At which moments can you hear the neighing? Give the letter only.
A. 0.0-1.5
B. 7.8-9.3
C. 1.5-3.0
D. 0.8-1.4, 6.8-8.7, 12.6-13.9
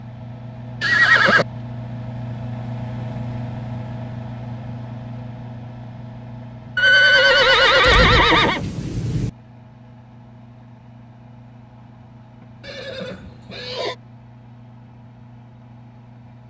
D.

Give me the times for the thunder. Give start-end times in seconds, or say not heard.
7.8-9.3.